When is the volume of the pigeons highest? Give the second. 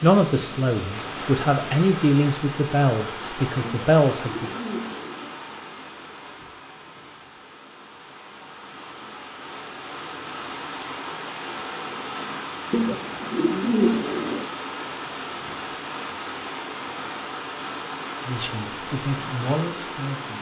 14 s.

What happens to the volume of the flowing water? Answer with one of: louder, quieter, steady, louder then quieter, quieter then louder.
quieter then louder.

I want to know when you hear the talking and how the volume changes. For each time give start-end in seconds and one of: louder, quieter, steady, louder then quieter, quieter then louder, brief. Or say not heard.
0.0-4.5 louder
18.2-20.3 brief.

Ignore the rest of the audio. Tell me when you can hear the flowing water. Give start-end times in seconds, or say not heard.
0.0-20.3.